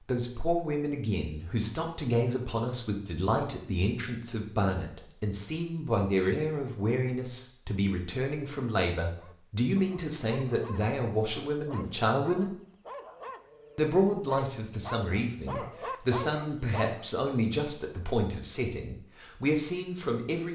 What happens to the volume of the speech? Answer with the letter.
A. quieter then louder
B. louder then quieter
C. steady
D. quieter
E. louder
C.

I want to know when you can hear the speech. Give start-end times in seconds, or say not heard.
0.0-12.6, 13.8-20.5.